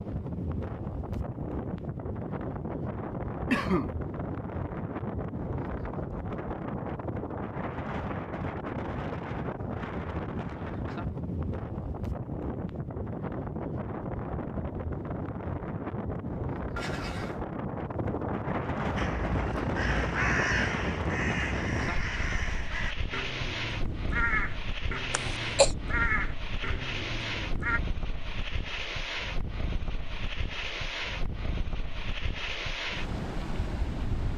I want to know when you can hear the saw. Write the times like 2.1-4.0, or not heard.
not heard.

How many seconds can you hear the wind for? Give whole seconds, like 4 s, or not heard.
34 s.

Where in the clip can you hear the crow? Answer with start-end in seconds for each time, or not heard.
18.9-27.8.